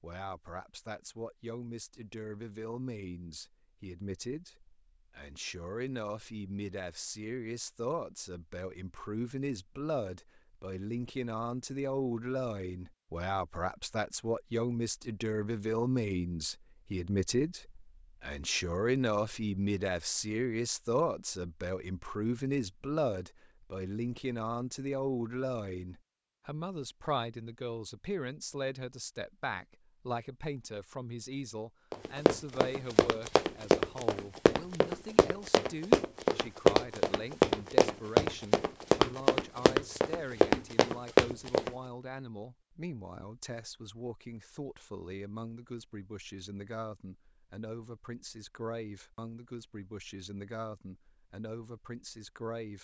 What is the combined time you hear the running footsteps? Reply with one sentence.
You can hear the running footsteps for 10 seconds altogether.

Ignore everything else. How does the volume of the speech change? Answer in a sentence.
The volume of the speech goes up, then down.